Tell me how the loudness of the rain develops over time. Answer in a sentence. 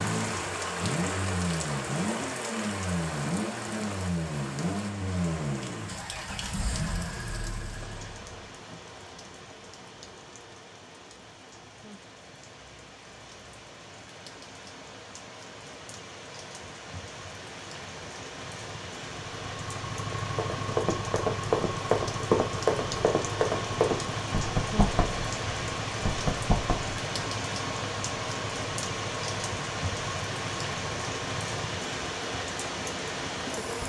The loudness of the rain goes down, then up.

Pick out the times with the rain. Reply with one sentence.
You can hear the rain from 0.0 to 33.8 s.